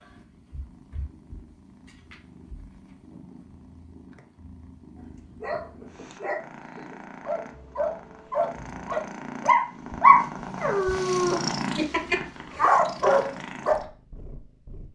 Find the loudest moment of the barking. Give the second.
10 s.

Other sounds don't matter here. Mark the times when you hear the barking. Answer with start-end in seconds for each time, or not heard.
5.4-13.8.